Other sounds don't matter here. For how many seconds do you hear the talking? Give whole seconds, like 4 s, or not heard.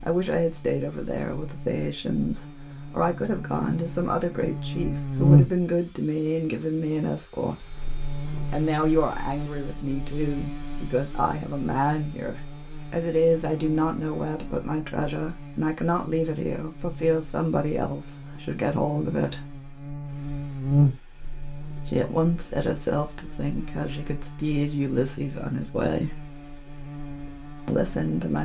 24 s.